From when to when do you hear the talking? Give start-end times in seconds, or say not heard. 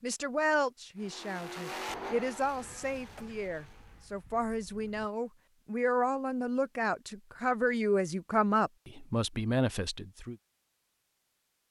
0.0-10.3.